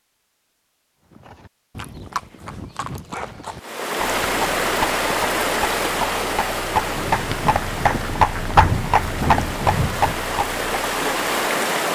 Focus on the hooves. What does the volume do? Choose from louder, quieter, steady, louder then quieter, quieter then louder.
louder.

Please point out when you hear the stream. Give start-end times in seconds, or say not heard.
3.6-11.9.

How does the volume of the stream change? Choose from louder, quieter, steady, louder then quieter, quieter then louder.
quieter then louder.